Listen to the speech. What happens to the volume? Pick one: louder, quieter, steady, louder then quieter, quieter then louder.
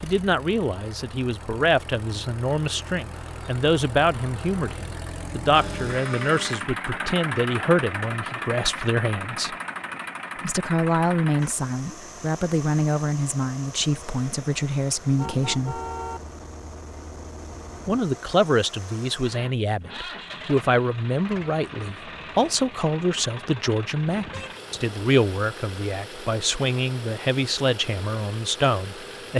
steady.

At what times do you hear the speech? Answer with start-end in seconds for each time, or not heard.
0.0-9.6, 10.4-15.8, 17.9-29.3.